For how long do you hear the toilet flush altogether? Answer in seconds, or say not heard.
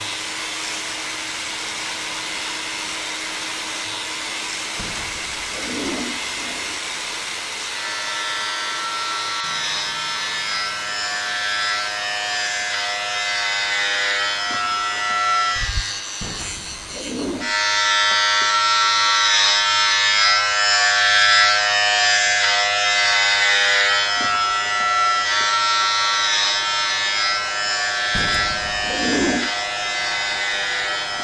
5 s.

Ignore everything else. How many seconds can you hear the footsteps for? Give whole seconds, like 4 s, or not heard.
not heard.